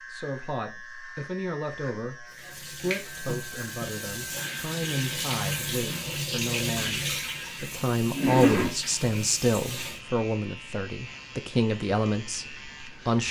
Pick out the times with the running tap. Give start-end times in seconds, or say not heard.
2.3-10.0.